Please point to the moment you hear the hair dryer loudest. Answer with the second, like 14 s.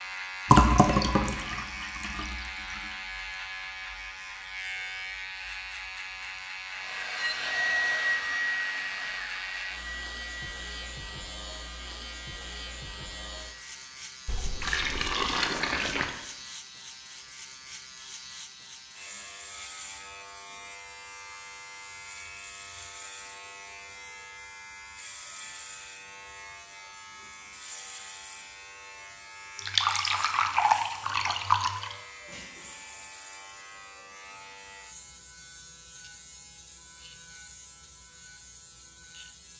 8 s.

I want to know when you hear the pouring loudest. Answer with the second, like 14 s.
1 s.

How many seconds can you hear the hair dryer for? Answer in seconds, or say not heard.
7 s.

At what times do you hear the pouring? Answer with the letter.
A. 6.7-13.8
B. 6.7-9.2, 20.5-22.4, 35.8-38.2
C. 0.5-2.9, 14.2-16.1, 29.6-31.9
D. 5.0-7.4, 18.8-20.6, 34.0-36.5
C.